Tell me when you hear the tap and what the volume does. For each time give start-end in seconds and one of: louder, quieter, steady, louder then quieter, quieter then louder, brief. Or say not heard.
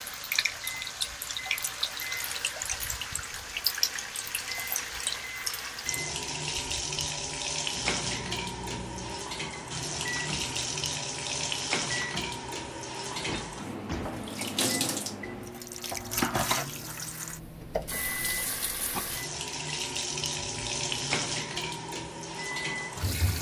0.0-23.3 steady.